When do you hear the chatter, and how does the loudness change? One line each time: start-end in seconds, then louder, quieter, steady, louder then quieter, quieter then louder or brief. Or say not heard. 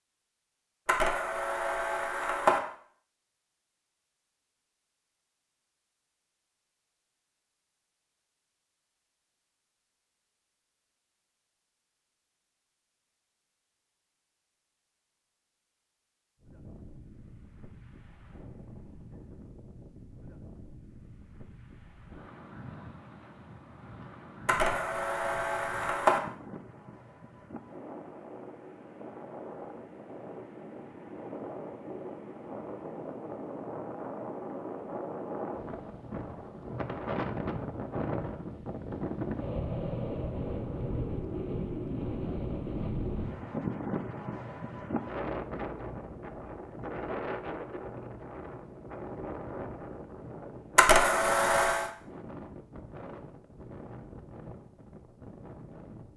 not heard.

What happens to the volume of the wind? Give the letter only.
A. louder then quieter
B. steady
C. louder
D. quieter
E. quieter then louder
A.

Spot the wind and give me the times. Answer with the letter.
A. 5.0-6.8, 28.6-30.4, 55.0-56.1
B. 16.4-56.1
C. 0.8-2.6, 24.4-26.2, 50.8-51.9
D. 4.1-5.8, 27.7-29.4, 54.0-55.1
B.